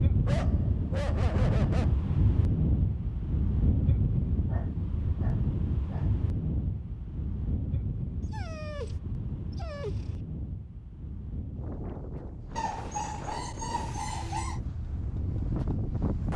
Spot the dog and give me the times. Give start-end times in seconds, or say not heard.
0.2-1.9, 4.5-6.1, 8.2-10.2, 12.6-14.6.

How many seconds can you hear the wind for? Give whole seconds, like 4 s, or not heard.
16 s.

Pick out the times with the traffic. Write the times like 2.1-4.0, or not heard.
not heard.